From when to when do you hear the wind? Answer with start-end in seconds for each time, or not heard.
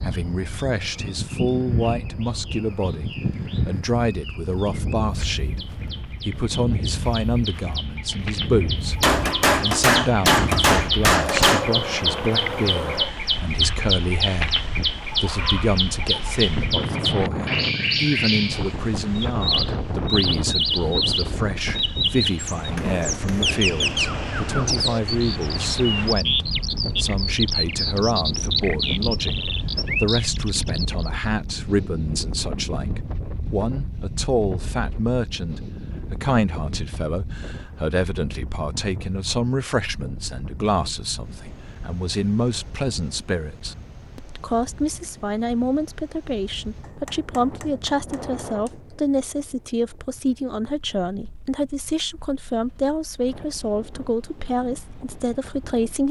0.0-56.0.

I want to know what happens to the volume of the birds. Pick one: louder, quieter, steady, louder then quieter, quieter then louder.
louder.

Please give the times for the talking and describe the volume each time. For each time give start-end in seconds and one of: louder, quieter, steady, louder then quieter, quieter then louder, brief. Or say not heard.
0.0-56.0 steady.